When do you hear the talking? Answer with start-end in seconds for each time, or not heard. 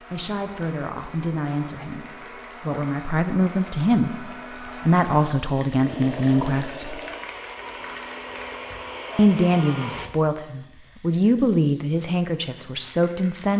0.1-7.0, 9.2-13.5.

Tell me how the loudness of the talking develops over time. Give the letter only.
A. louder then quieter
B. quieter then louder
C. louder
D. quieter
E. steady
C.